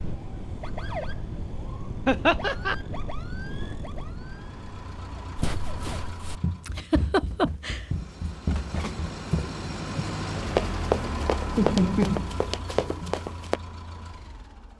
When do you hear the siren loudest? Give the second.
1 s.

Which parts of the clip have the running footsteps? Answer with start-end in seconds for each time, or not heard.
5.3-13.6.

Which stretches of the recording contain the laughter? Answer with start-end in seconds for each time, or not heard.
2.0-2.8, 6.7-7.8, 11.6-13.2.